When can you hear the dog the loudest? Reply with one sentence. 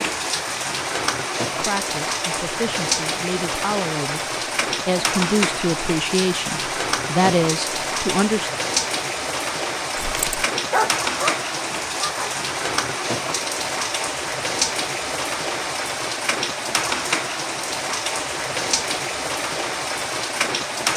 The loudest moment of the dog is at 11 seconds.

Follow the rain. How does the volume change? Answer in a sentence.
The loudness of the rain stays about the same.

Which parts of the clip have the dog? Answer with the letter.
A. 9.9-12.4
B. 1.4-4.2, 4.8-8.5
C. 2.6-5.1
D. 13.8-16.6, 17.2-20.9
A.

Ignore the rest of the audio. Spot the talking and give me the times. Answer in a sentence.
You can hear the talking from 1.4 to 4.2 s and from 4.8 to 8.5 s.